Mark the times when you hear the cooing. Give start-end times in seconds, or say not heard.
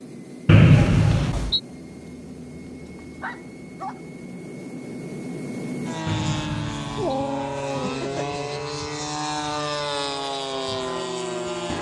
not heard.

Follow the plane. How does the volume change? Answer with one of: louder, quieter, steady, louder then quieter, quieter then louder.
louder.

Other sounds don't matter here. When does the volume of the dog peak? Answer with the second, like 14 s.
7 s.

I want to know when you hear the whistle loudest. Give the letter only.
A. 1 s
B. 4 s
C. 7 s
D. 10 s
A.